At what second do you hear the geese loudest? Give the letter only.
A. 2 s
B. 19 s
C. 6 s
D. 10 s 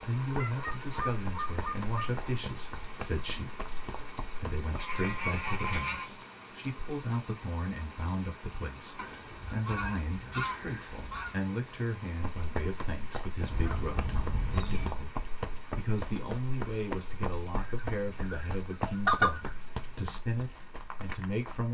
B.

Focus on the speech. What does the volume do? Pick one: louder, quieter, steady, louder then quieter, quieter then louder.
steady.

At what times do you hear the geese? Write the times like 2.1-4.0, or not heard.
0.1-2.1, 4.6-6.1, 8.9-11.3, 13.5-15.0, 17.6-19.5.